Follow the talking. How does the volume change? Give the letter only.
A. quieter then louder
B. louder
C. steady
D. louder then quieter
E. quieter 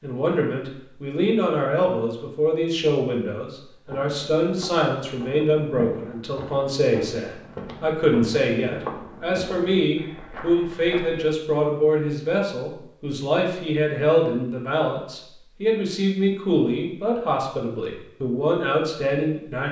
C.